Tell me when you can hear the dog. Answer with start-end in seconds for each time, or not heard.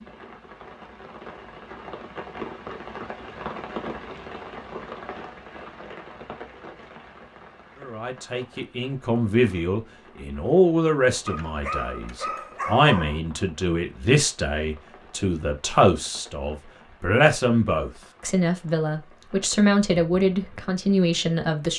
11.2-13.2.